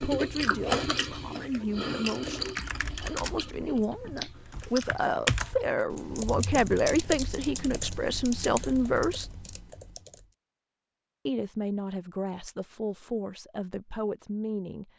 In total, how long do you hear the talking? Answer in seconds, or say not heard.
13 s.